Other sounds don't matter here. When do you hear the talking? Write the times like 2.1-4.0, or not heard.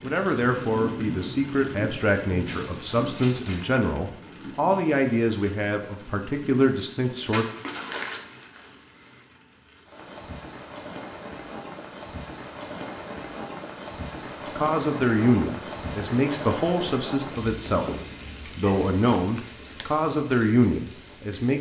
0.0-7.5, 14.6-21.5.